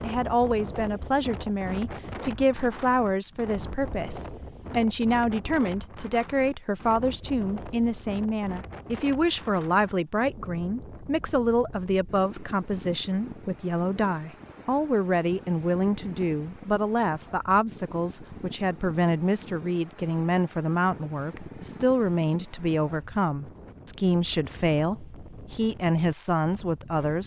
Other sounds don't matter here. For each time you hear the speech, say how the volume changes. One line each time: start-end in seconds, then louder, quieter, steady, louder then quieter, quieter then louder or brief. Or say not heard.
0.0-27.2 steady.